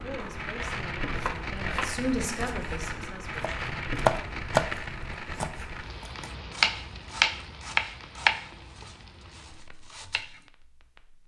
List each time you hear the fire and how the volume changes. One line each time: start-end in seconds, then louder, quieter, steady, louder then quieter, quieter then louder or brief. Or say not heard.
0.0-11.2 quieter.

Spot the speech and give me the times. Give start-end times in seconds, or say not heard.
0.0-3.5.